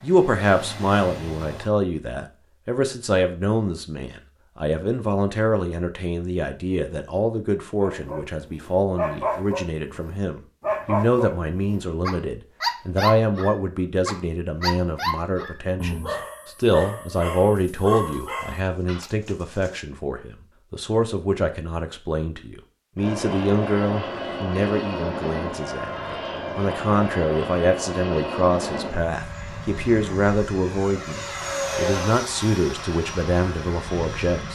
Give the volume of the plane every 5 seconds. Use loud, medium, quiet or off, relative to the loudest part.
medium, off, off, off, loud, loud, loud.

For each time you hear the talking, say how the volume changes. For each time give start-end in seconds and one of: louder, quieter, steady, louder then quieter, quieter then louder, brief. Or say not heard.
0.0-34.5 steady.